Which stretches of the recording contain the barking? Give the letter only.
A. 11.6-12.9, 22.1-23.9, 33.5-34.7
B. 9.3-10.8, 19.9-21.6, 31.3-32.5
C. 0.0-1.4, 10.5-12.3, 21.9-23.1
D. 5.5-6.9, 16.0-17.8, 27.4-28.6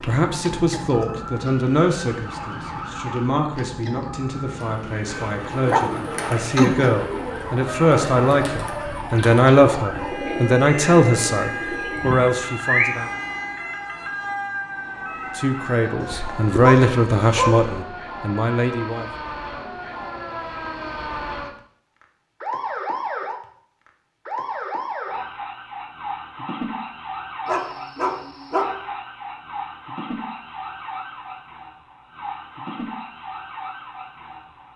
D.